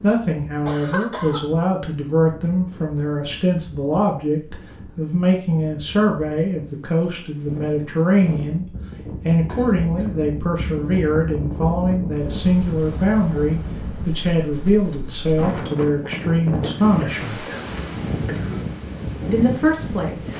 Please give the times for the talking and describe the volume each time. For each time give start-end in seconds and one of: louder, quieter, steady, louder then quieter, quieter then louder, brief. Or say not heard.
0.0-8.7 steady
9.2-17.4 steady
19.3-20.3 brief.